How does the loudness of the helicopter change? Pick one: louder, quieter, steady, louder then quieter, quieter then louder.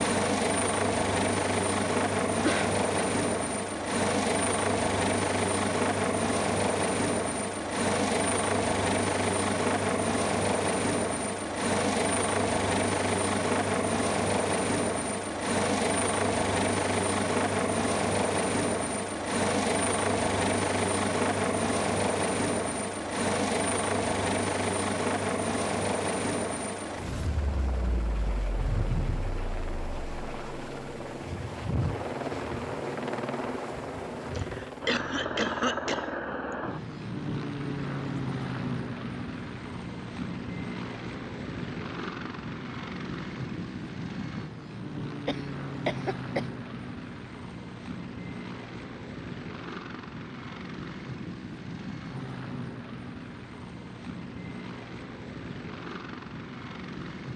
quieter.